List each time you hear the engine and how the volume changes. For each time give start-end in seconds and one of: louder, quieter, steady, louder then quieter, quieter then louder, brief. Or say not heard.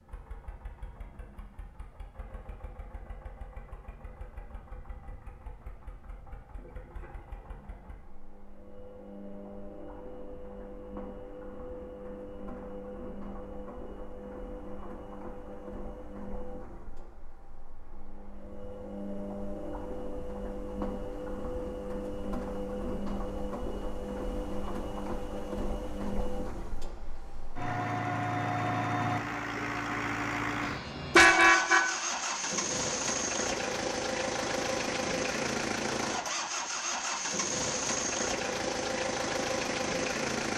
0.0-40.5 louder.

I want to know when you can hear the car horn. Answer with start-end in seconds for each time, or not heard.
30.6-31.9.